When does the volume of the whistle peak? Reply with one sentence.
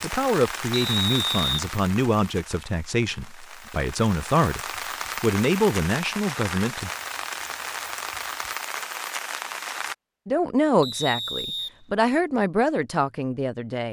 The volume of the whistle peaks at 1 second.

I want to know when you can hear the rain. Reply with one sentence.
The rain can be heard from 0.0 to 9.9 s.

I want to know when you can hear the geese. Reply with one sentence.
The geese can't be heard in this clip.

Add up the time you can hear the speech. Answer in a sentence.
The speech can be heard for 10 seconds in total.